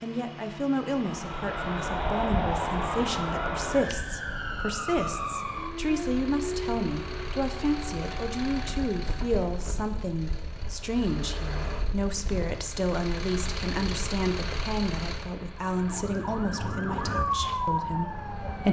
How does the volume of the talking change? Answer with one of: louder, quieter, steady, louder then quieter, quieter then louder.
steady.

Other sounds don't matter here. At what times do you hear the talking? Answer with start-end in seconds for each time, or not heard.
0.0-18.6.